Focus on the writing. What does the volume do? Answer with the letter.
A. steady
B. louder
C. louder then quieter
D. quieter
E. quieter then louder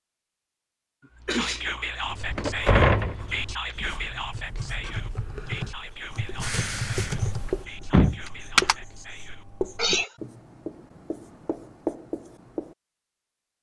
B.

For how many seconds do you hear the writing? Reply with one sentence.
You can hear the writing for 11 seconds altogether.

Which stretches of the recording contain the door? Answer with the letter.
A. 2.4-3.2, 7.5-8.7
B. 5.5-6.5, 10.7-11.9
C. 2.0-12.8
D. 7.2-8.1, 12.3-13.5
A.